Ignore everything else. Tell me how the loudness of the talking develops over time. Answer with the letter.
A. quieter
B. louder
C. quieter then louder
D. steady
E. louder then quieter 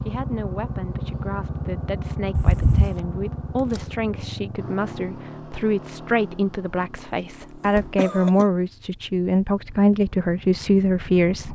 B.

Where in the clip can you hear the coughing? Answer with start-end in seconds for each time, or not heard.
2.4-2.9, 8.0-8.4.